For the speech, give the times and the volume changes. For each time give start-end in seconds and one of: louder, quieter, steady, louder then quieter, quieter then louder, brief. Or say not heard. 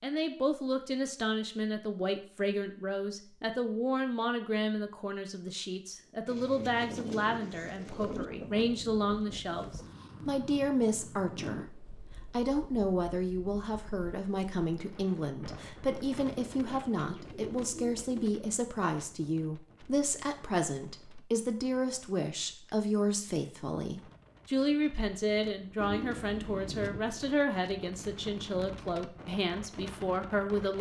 0.0-30.7 steady.